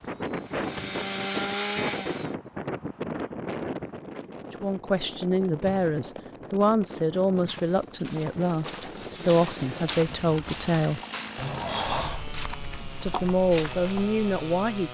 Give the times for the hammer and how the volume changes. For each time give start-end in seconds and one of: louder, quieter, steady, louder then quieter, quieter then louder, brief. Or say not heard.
not heard.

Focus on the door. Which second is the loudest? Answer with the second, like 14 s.
12 s.